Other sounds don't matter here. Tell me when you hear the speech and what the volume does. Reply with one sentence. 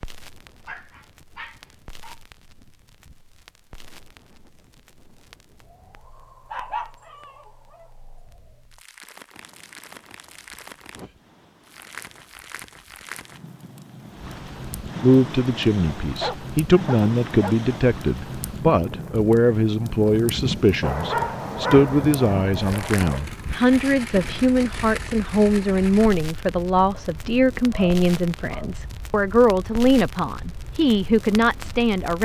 The speech can be heard from 15.0 to 32.1 s, at a steady volume.